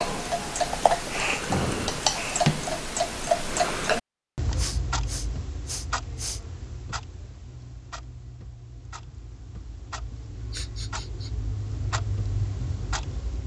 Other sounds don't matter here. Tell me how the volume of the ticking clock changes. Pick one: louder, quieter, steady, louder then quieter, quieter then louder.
quieter then louder.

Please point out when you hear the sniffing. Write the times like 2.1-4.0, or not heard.
1.1-2.5, 4.5-6.4, 10.1-11.3.